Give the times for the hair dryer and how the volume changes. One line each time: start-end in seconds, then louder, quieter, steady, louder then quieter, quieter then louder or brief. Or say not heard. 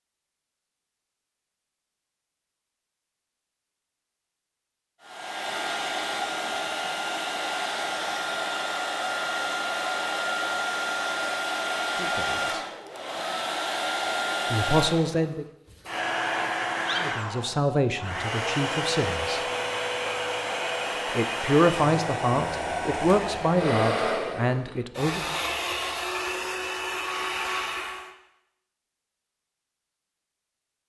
5.0-28.1 steady.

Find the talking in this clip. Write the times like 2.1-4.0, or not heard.
11.9-12.6, 14.5-15.4, 17.0-19.4, 21.1-25.4.